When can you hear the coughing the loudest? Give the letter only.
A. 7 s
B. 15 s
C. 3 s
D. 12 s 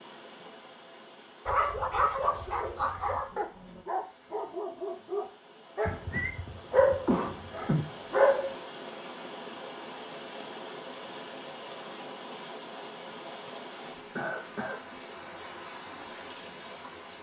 A.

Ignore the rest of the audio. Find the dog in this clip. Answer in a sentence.
You can hear the dog from 1.4 to 8.5 s.